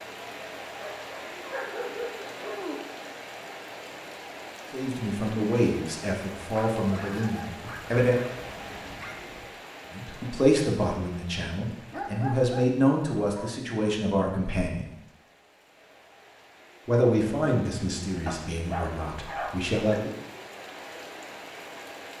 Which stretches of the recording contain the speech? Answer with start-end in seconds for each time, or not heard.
4.7-8.2, 9.9-14.9, 16.9-20.1.